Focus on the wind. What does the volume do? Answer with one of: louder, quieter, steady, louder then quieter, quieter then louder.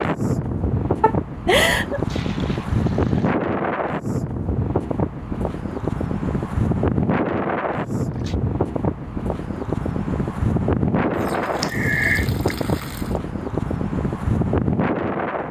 steady.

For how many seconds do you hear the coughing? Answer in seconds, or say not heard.
2 s.